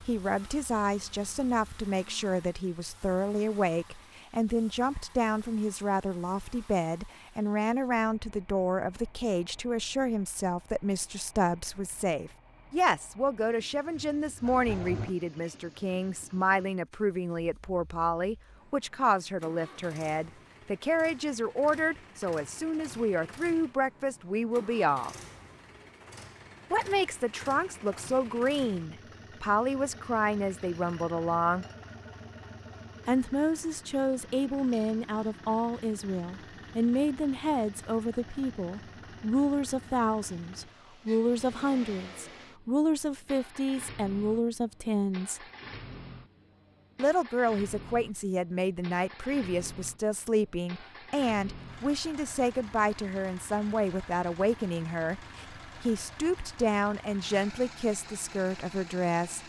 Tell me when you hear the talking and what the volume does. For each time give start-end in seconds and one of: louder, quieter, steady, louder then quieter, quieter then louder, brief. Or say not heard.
0.0-25.1 steady
26.7-31.6 steady
33.0-45.4 steady
47.0-59.4 steady.